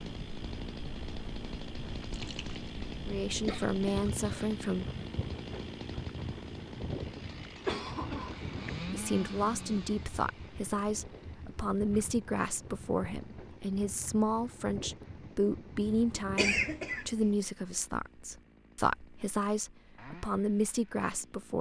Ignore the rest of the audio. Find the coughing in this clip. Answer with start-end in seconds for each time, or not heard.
3.4-4.5, 7.7-8.7, 16.4-17.4.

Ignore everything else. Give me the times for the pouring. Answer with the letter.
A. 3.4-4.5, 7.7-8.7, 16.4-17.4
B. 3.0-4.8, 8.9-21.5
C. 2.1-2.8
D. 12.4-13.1
C.